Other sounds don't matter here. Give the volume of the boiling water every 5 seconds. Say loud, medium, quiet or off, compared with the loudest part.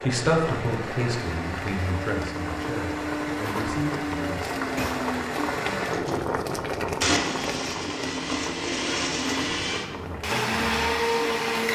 loud, loud, medium.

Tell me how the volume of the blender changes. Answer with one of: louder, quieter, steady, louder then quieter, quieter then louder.
louder.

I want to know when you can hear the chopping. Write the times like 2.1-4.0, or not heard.
not heard.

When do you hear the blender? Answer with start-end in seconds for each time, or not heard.
0.0-11.6.